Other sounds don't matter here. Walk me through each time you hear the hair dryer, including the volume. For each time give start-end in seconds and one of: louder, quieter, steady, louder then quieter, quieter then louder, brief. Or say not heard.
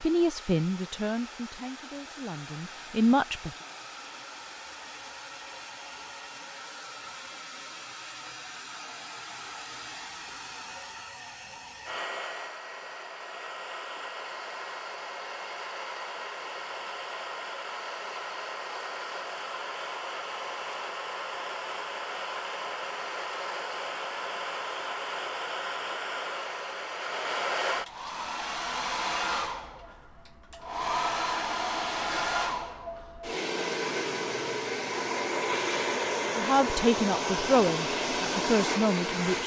0.0-39.4 louder.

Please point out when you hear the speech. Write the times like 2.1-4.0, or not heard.
0.0-3.5, 36.4-39.4.